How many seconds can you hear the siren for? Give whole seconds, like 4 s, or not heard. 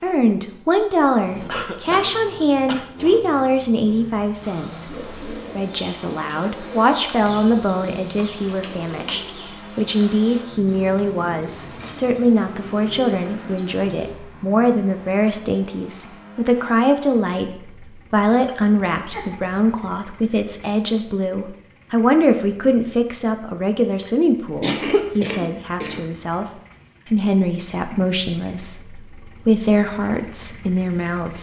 not heard.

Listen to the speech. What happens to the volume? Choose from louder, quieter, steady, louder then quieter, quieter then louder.
steady.